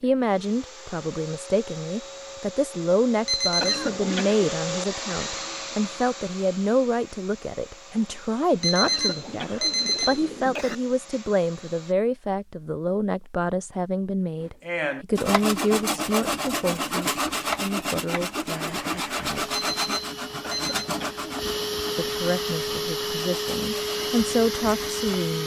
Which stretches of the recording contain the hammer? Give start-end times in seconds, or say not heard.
not heard.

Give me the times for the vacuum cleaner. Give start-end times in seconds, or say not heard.
0.0-11.9, 18.5-25.4.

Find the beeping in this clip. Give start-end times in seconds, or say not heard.
3.2-3.9, 8.6-10.3, 19.5-20.9.